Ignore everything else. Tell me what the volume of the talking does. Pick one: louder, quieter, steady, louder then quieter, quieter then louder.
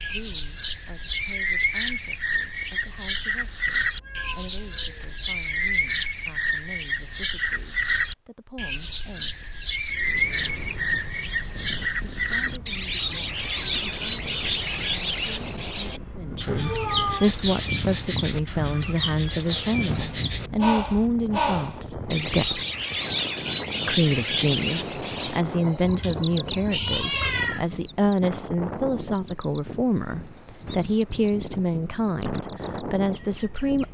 louder.